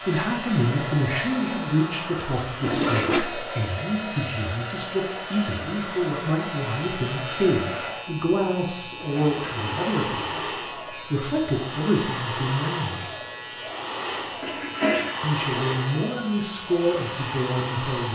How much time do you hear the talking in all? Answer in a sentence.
You can hear the talking for 16 seconds altogether.